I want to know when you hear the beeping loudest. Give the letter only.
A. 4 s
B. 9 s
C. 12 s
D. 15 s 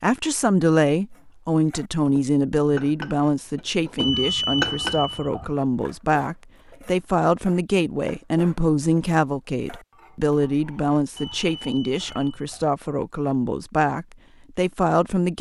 A.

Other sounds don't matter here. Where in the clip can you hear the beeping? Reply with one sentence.
You can hear the beeping from 4.0 to 5.5 s and from 11.2 to 12.7 s.